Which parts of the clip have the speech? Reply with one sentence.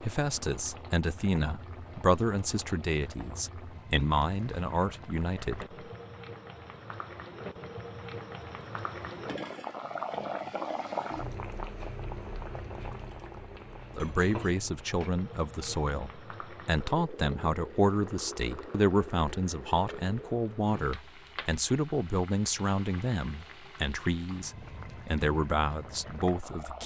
The speech can be heard from 0.0 to 5.8 s and from 13.9 to 26.8 s.